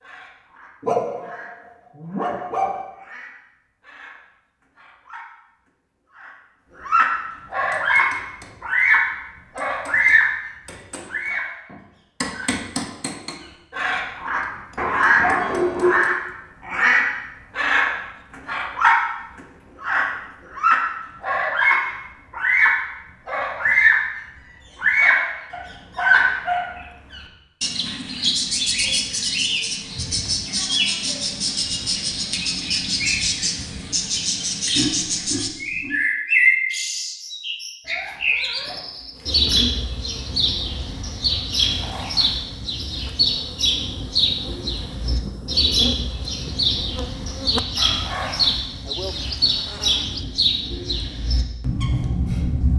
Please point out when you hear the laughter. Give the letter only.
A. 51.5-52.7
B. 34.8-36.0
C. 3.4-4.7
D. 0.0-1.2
B.